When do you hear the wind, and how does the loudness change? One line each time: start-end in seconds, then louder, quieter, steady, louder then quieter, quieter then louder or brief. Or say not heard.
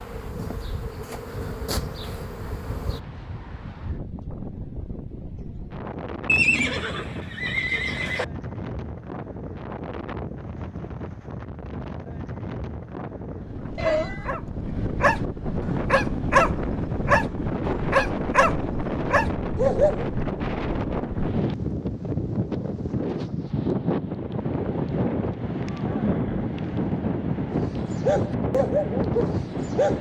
0.0-29.9 louder.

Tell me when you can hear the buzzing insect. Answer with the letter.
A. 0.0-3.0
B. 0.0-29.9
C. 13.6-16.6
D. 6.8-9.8
A.